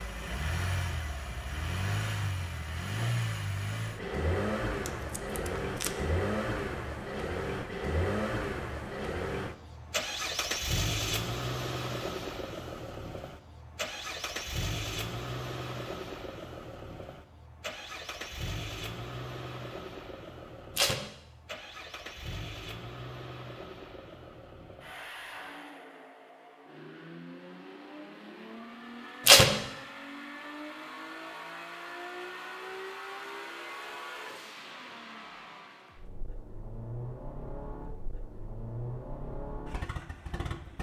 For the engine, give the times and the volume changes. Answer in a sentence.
The engine can be heard from 0.0 to 40.7 s, getting quieter.